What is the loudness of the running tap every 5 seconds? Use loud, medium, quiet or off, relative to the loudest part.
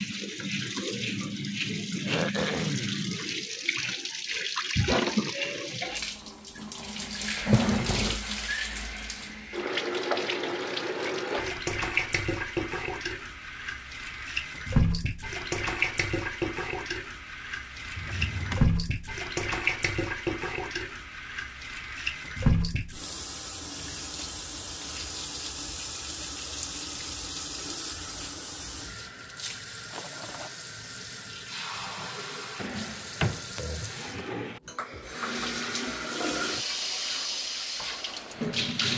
loud, loud, loud, loud, loud, medium, medium, loud.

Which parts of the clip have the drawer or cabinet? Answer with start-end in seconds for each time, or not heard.
7.4-8.2, 17.8-18.6, 32.5-34.6.